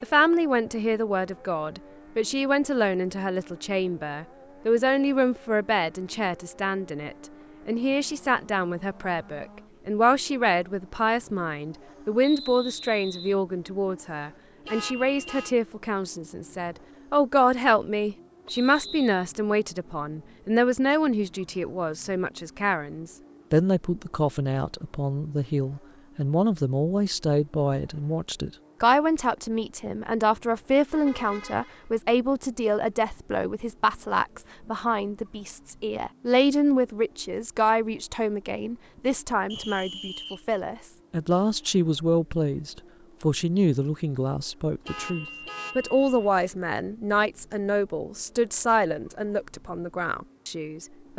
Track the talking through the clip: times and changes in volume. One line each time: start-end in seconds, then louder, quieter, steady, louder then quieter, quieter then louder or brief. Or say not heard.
0.0-51.1 steady.